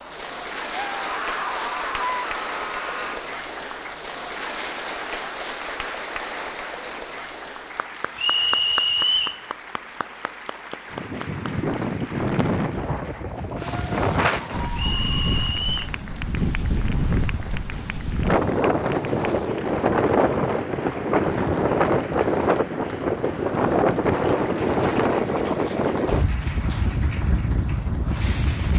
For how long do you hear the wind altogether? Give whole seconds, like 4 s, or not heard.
18 s.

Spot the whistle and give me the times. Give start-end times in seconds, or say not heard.
8.2-9.4, 14.8-15.9.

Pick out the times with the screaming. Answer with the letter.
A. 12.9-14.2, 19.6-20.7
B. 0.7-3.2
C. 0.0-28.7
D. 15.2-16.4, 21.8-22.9
B.